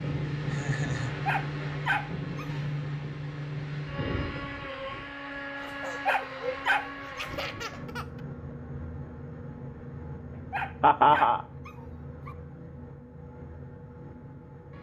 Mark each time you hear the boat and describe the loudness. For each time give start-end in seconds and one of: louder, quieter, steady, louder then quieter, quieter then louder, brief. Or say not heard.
0.0-14.7 quieter.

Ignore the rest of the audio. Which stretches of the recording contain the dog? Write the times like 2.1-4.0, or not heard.
1.2-2.6, 6.0-7.2, 10.5-12.3.